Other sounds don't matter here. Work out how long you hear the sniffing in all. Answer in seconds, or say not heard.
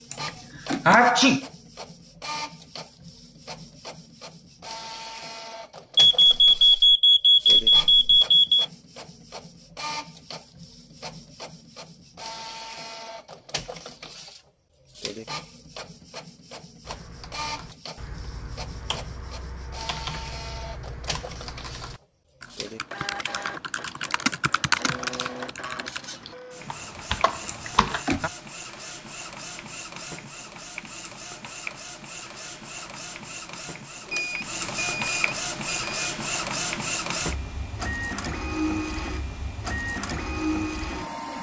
2 s.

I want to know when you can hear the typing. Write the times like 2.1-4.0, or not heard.
16.9-28.2.